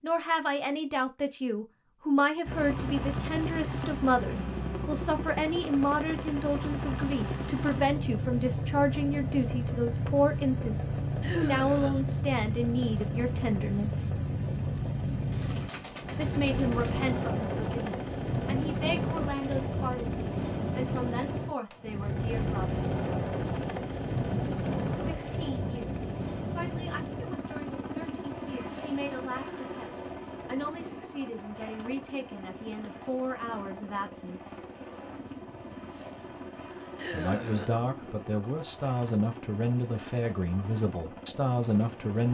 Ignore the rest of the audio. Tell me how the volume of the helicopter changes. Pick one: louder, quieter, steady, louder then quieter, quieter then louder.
quieter.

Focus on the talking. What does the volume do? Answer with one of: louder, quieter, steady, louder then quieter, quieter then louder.
quieter then louder.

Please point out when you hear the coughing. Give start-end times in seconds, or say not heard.
11.2-12.2, 37.0-37.7.